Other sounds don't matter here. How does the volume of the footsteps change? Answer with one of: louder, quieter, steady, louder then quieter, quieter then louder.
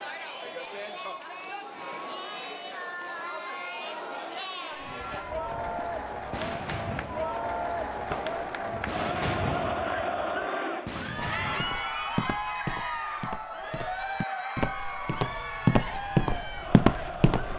louder.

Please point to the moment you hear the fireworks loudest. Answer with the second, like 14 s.
9 s.